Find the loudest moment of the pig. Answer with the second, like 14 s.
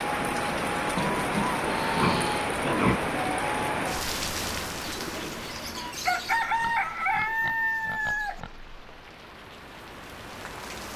3 s.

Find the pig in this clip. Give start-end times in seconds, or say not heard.
0.9-3.0, 6.5-9.1.